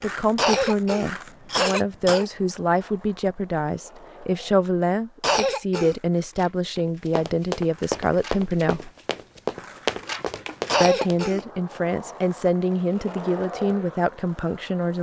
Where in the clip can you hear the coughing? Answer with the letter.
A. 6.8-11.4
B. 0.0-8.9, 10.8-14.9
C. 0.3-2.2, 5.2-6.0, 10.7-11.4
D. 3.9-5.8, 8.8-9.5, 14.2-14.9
C.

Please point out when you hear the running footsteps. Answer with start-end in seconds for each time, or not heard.
6.8-11.4.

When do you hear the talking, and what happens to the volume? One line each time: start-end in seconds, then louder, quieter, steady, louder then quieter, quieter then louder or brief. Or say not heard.
0.0-8.9 steady
10.8-14.9 steady.